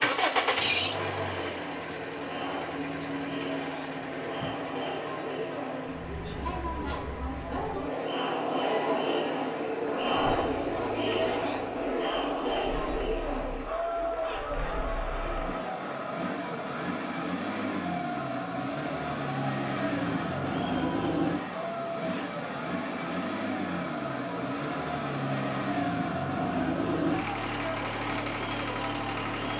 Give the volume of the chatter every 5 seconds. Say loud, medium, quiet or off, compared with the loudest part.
medium, loud, loud, medium, medium, medium.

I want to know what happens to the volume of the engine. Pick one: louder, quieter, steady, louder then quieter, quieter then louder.
quieter then louder.